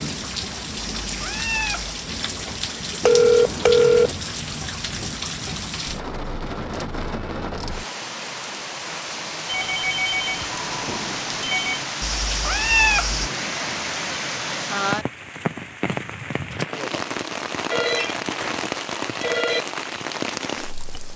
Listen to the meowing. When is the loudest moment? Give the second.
13 s.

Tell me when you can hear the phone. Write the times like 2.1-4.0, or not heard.
3.0-4.2, 9.4-11.8, 17.7-19.6.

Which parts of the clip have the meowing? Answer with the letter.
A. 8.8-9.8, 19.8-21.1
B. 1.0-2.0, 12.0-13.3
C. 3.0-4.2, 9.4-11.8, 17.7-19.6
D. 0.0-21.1
B.